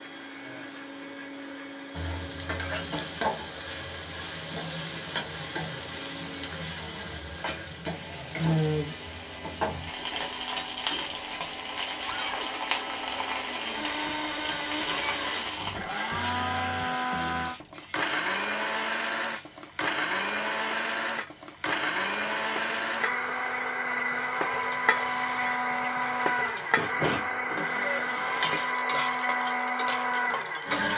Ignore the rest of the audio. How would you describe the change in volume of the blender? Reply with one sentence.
The loudness of the blender goes up.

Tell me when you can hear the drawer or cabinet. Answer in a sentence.
The drawer or cabinet can be heard from 12.1 to 12.5 s.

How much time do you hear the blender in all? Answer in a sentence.
The blender can be heard for 31 seconds in total.